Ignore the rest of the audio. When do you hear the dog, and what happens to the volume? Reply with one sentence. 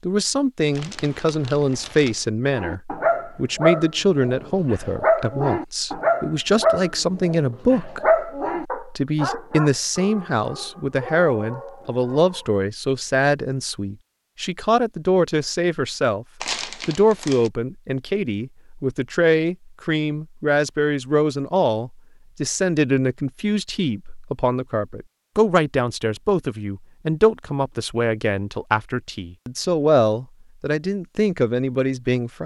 You can hear the dog from 2.5 to 12.5 s, getting quieter.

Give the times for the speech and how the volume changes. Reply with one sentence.
The speech can be heard from 0.0 to 32.4 s, at a steady volume.